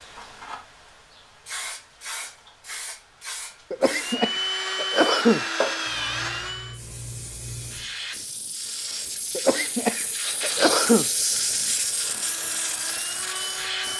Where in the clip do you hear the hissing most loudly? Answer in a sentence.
The loudest moment of the hissing is at 11 seconds.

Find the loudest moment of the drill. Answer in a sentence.
The volume of the drill peaks at 5 seconds.